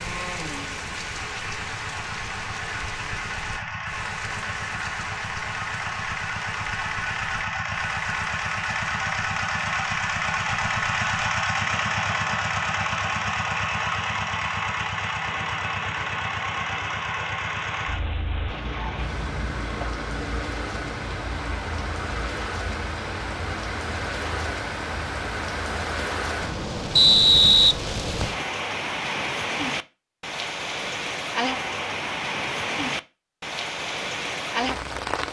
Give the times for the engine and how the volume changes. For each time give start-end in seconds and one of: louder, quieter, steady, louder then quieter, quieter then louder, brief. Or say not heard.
0.0-26.7 louder then quieter.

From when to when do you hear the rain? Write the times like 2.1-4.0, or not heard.
0.0-35.2.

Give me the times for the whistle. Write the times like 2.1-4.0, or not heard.
26.9-28.4.